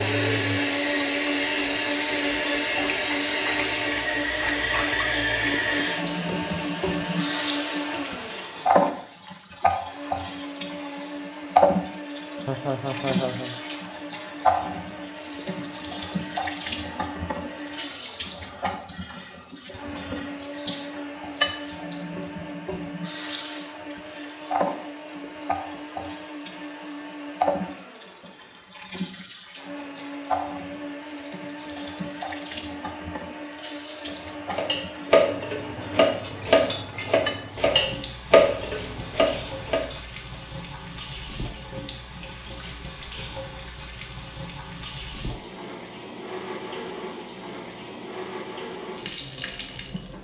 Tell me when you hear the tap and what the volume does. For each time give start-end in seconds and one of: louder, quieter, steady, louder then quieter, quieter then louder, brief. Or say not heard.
0.0-50.2 quieter.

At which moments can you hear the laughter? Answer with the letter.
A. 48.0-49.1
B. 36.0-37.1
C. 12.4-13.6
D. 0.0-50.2
C.